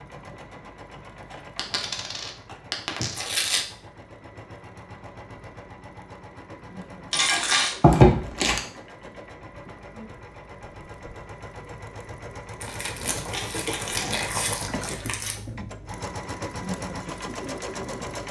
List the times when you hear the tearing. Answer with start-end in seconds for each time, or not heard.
3.1-3.6, 7.8-8.6, 12.6-15.3.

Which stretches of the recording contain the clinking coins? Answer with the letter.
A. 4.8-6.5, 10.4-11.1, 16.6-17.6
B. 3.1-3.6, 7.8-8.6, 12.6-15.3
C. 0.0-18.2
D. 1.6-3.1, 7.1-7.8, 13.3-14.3
D.